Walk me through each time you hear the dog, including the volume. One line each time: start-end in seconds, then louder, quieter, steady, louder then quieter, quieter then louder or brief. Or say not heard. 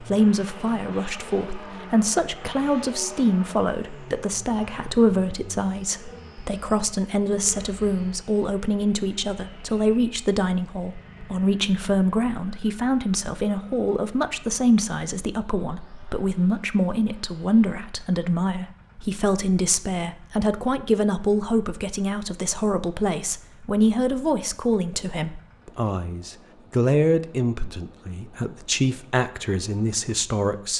not heard.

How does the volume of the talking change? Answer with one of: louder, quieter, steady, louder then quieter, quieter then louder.
steady.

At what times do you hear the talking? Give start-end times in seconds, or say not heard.
0.0-30.7.